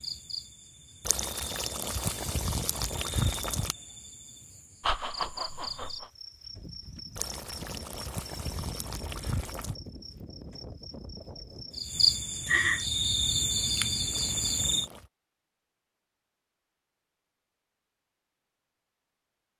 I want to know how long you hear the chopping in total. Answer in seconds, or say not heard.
not heard.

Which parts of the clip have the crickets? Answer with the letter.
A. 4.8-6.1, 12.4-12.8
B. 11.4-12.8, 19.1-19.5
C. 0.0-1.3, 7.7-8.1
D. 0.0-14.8
D.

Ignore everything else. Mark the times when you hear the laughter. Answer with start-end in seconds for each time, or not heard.
4.8-6.1, 12.4-12.8.